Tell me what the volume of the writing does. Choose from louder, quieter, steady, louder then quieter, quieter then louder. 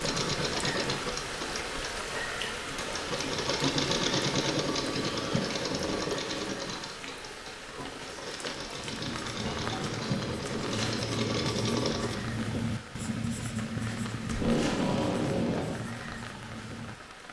louder then quieter.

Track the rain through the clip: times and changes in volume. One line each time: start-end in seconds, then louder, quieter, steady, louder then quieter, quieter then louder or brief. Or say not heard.
0.0-17.2 quieter.